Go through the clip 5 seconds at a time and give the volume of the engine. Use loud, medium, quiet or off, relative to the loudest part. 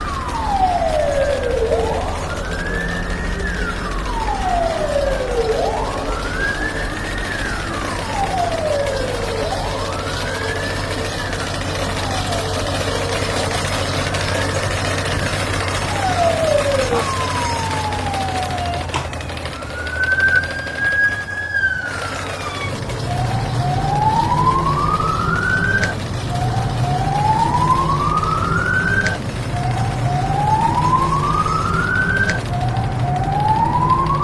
medium, medium, loud, loud, medium, medium, medium.